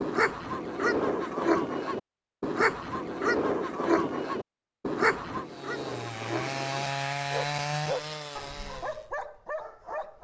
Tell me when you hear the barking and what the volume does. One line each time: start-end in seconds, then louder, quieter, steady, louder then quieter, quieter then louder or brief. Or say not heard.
0.0-10.1 quieter.